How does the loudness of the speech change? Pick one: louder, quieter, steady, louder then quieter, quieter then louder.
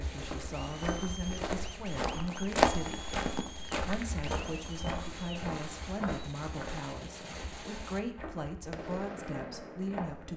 steady.